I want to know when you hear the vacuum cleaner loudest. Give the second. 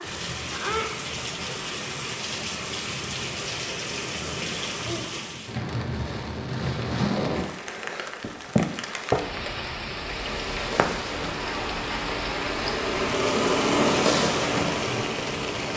14 s.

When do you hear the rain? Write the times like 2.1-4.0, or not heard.
0.0-15.7.